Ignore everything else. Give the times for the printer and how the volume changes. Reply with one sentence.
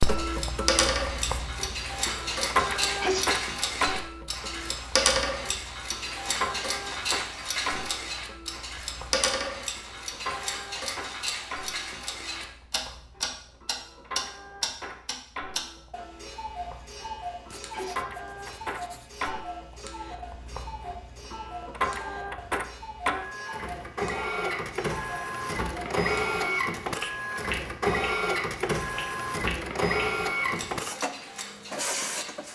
The printer can be heard from 0.0 to 32.4 s, getting quieter then louder.